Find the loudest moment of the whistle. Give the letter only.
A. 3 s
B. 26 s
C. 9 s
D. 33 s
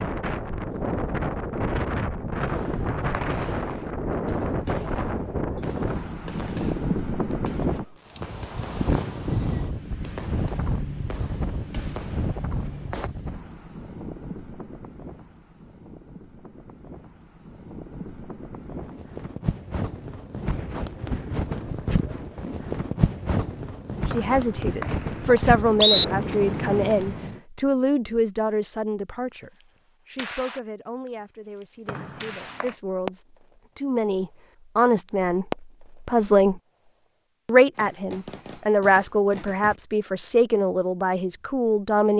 B.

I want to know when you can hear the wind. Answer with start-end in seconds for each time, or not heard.
0.0-27.4.